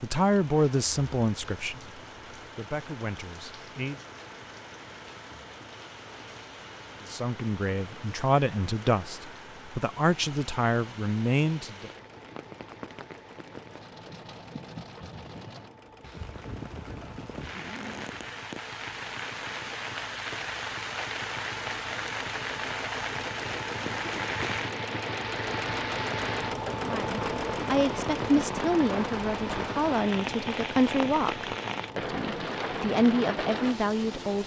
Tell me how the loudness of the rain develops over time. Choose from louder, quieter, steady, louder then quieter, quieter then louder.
louder.